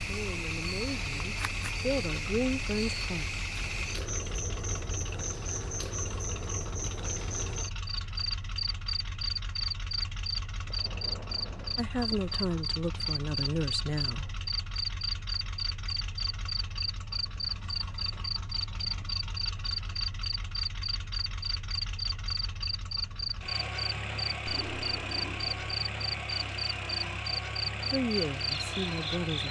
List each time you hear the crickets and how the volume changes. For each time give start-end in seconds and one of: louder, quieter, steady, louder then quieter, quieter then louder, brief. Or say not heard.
0.0-29.4 steady.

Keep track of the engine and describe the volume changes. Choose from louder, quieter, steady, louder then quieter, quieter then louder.
louder.